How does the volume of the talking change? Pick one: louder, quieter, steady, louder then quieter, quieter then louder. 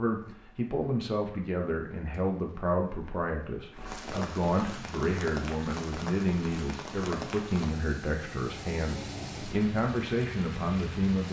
steady.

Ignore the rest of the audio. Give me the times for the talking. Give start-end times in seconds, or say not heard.
0.0-11.2.